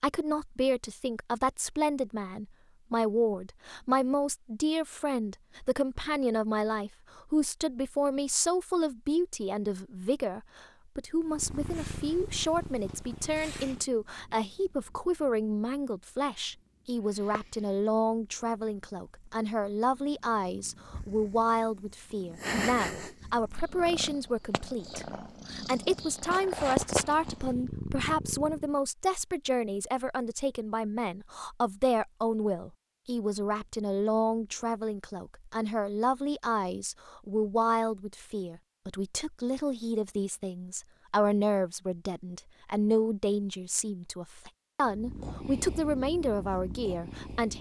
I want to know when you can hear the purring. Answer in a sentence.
The purring can be heard from 11.2 to 28.8 s and from 44.9 to 47.5 s.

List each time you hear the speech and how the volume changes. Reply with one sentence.
You can hear the speech from 0.0 to 47.5 s, at a steady volume.